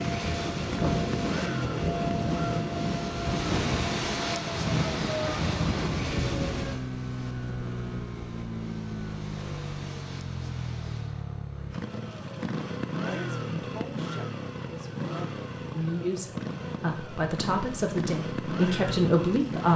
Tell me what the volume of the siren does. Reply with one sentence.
The volume of the siren stays about the same.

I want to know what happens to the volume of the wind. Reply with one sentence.
The volume of the wind goes down.